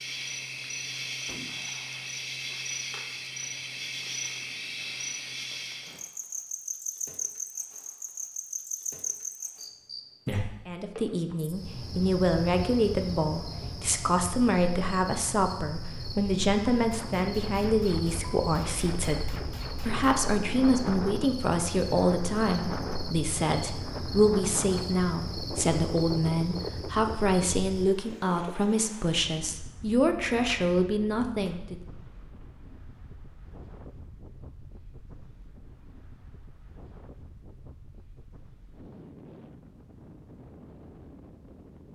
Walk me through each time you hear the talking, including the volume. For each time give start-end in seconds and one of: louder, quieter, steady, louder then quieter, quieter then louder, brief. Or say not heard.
10.7-31.8 steady.